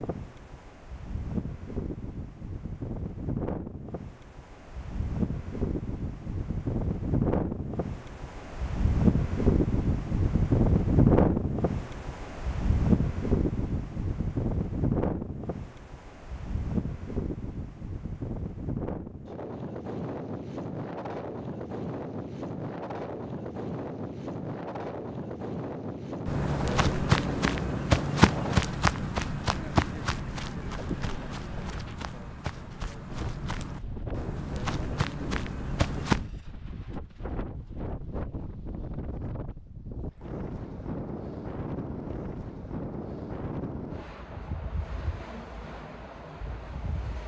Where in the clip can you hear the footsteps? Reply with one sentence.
You can hear the footsteps from 26.2 to 36.2 s.